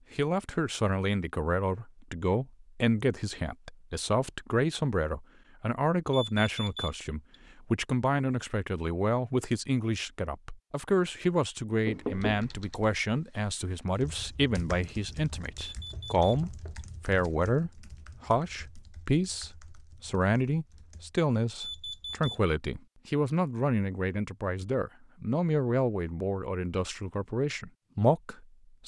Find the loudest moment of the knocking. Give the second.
12 s.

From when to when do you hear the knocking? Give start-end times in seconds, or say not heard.
11.8-12.5, 15.9-16.8.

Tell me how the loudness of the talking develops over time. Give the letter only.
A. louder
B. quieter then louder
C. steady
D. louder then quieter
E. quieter
C.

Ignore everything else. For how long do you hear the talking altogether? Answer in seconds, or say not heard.
29 s.